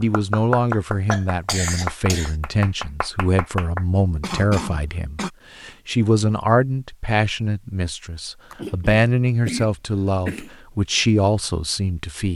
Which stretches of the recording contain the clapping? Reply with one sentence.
The clapping can be heard from 0.0 to 3.9 s.